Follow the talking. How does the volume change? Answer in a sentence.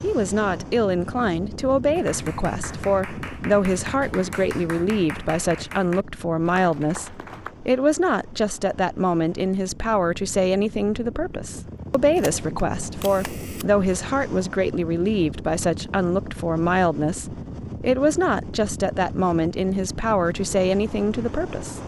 The volume of the talking stays about the same.